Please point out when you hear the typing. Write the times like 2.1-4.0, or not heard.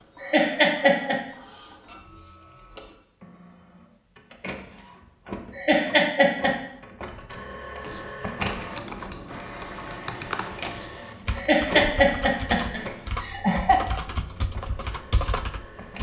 7.8-15.9.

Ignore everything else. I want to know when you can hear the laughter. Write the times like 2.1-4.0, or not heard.
0.2-1.1, 5.5-6.5, 11.3-13.8.